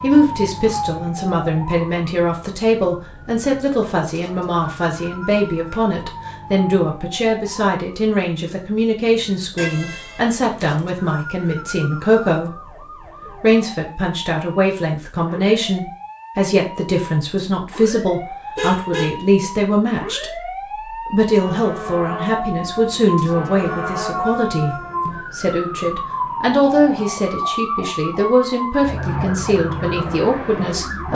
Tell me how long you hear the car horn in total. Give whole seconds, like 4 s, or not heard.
2 s.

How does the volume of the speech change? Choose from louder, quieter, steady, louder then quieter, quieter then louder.
steady.